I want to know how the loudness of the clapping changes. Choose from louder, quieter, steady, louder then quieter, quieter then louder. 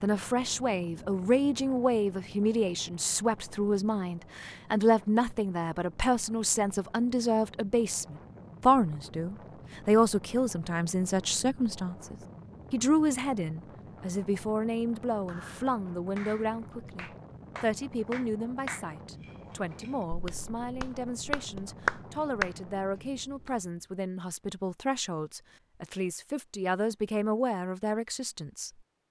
louder.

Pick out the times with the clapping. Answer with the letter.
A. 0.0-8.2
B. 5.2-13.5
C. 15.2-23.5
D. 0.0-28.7
C.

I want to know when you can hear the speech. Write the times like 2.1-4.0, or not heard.
0.0-28.7.